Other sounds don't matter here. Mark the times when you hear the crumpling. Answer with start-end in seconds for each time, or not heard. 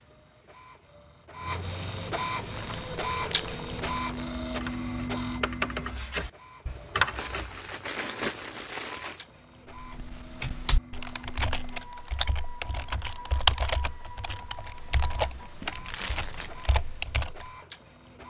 2.5-4.4, 7.2-9.2, 15.6-16.7.